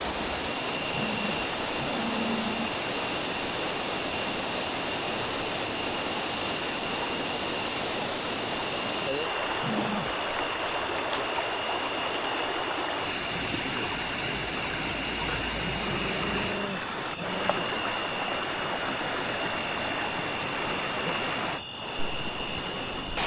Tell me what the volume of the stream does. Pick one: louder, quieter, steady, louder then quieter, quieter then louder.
steady.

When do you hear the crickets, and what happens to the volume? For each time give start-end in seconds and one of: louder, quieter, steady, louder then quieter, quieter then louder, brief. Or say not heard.
0.0-23.2 steady.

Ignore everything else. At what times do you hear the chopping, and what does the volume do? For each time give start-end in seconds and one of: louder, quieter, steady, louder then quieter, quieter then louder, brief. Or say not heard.
not heard.